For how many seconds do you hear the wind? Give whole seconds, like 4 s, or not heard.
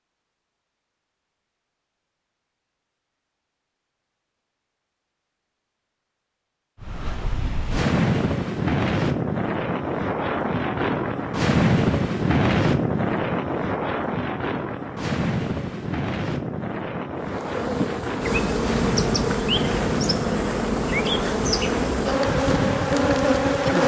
17 s.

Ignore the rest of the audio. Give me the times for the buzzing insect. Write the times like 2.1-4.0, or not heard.
17.2-23.8.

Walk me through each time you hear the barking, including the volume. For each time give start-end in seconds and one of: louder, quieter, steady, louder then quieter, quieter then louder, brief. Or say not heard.
not heard.